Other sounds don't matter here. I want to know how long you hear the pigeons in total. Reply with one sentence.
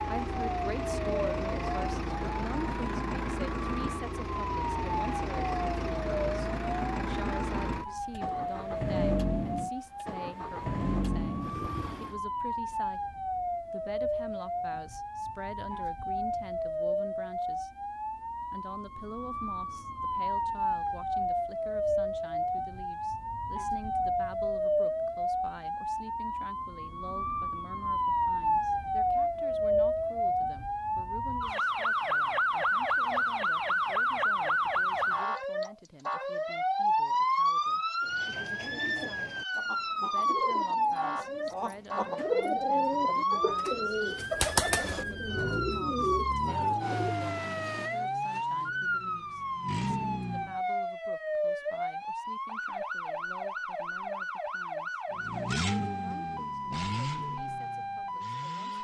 You can hear the pigeons for 9 seconds altogether.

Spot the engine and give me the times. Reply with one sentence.
The engine can be heard from 0.0 to 12.2 s, from 44.7 to 50.6 s and from 55.1 to 58.7 s.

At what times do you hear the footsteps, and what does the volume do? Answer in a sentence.
You can't hear the footsteps here.